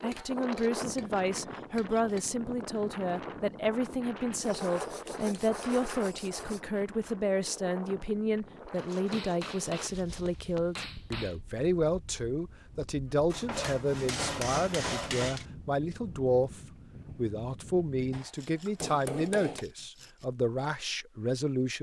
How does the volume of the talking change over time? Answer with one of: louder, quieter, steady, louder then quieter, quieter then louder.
steady.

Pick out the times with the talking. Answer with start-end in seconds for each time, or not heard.
0.0-21.7.